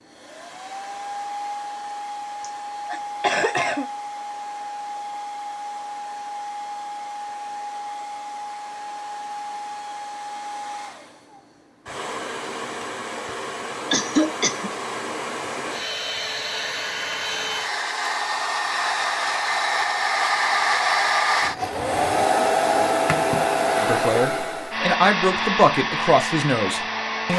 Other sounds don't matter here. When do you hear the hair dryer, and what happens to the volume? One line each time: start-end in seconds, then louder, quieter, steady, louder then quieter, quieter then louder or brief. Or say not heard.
0.0-27.3 louder.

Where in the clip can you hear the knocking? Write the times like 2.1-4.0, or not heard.
not heard.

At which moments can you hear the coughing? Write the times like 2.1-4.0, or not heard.
2.4-3.9, 13.9-14.8, 21.4-22.3.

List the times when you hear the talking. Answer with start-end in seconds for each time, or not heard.
23.8-27.3.